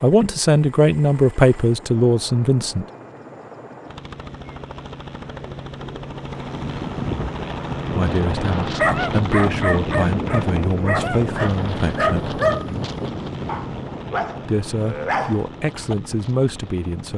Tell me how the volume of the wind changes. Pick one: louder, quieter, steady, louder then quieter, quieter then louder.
quieter.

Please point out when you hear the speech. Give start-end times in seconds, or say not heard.
0.0-2.9, 7.9-12.4, 14.4-17.1.